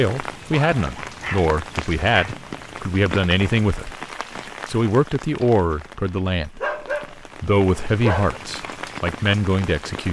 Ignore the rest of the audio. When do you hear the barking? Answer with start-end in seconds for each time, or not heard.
0.6-2.4, 6.6-8.4.